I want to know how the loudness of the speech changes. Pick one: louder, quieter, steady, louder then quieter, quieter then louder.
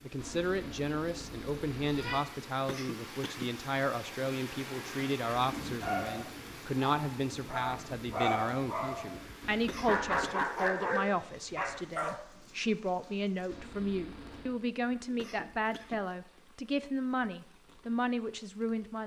steady.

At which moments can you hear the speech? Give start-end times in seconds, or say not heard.
0.0-19.0.